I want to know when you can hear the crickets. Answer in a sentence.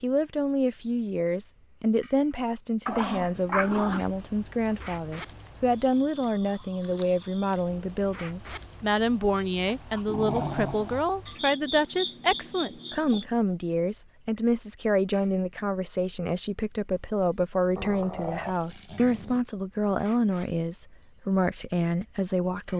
You can hear the crickets from 0.0 to 22.7 s.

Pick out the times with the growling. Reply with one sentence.
The growling can be heard from 2.9 to 4.1 s, from 9.7 to 11.1 s and from 17.8 to 19.4 s.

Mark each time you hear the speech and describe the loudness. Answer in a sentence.
The speech can be heard from 0.0 to 22.7 s, at a steady volume.